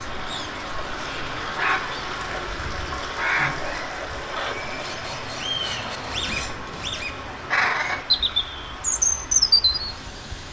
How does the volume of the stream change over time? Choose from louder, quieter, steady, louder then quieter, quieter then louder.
quieter.